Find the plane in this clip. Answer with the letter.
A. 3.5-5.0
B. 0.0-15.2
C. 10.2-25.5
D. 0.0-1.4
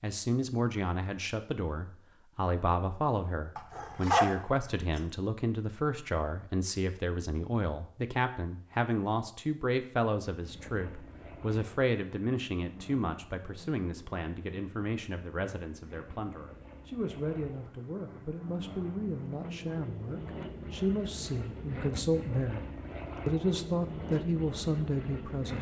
C.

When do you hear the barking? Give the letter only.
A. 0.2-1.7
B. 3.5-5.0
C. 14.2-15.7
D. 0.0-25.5
B.